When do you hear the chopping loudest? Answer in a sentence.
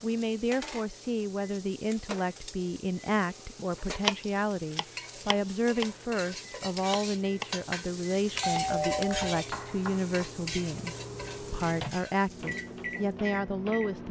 The loudest moment of the chopping is at 4 seconds.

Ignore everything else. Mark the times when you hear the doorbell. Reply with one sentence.
You can hear the doorbell from 8.3 to 9.4 s.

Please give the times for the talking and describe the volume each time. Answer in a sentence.
The talking can be heard from 0.0 to 14.0 s, at a steady volume.